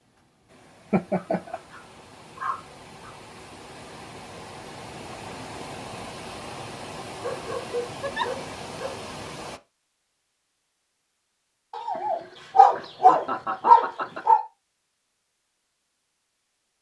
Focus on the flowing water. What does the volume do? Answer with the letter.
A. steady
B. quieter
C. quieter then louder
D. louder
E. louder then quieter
D.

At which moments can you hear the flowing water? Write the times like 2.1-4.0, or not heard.
0.0-9.6.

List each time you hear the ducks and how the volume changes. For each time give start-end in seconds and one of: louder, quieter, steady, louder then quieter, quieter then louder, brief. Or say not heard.
not heard.